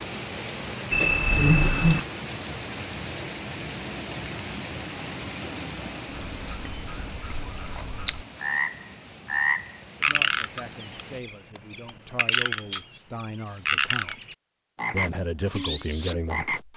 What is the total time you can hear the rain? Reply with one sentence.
The rain can be heard for 11 seconds in total.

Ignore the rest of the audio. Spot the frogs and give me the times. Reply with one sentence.
The frogs can be heard from 6.1 to 16.7 s.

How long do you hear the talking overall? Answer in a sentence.
You can hear the talking for 6 seconds altogether.